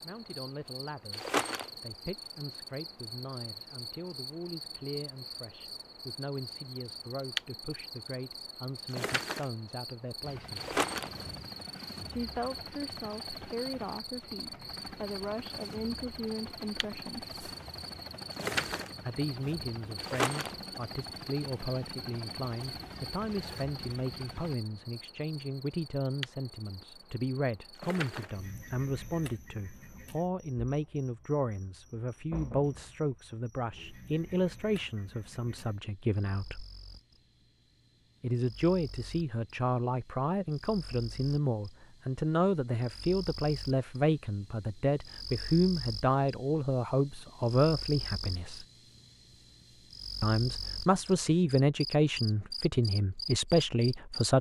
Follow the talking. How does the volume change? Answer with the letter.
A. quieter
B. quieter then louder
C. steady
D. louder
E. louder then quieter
D.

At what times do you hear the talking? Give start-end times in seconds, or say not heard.
0.0-10.8, 12.1-17.3, 19.1-36.6, 38.2-48.6, 50.2-54.3.